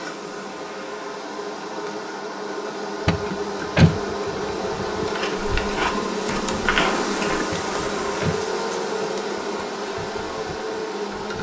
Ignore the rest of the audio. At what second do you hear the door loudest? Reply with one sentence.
The loudest moment of the door is at 4 seconds.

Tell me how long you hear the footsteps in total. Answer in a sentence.
You can hear the footsteps for 2 seconds altogether.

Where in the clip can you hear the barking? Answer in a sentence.
The barking can't be heard in this clip.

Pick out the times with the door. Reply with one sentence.
You can hear the door from 3.0 to 4.0 s and from 7.5 to 8.4 s.